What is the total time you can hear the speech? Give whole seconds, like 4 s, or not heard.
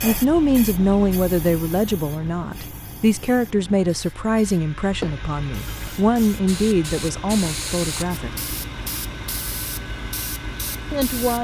9 s.